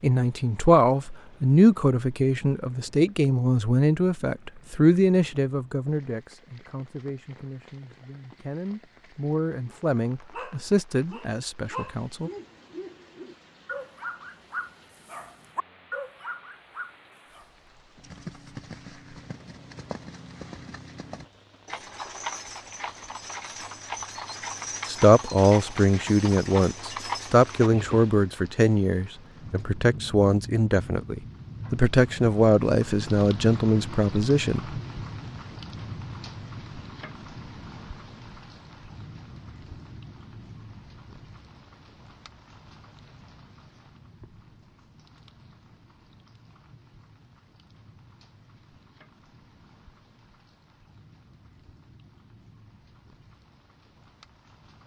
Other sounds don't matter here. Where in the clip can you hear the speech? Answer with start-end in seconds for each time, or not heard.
0.0-12.3, 24.9-34.8.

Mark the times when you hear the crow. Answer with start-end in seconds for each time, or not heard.
not heard.